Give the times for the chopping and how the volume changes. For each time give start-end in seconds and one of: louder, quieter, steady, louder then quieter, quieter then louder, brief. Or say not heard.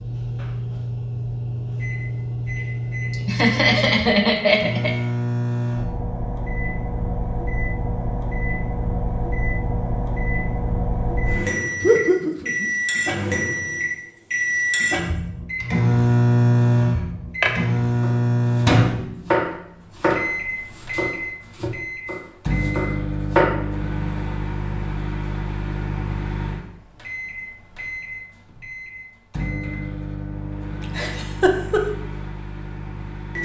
16.9-23.5 quieter.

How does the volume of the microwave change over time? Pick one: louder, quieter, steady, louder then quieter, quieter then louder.
louder then quieter.